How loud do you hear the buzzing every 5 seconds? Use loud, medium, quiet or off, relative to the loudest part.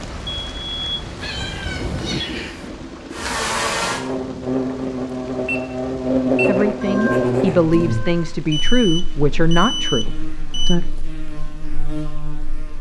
loud, loud, quiet.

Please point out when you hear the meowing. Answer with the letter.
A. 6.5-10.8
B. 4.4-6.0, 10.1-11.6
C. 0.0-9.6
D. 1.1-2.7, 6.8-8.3
D.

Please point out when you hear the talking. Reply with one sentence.
You can hear the talking from 6.5 to 10.8 s.